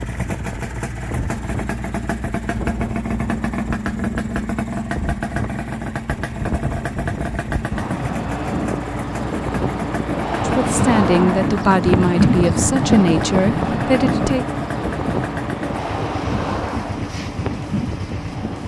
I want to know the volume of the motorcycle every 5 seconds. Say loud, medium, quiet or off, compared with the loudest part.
loud, loud, loud, medium.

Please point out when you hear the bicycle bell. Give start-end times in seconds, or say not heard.
not heard.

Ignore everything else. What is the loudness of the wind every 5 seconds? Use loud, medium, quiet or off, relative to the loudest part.
quiet, medium, loud, medium.